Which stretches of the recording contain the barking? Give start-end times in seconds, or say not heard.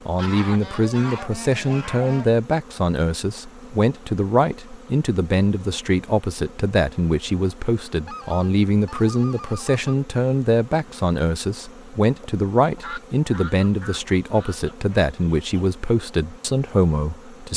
not heard.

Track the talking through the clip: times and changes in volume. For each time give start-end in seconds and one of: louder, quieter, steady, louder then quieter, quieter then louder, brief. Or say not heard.
0.1-17.5 steady.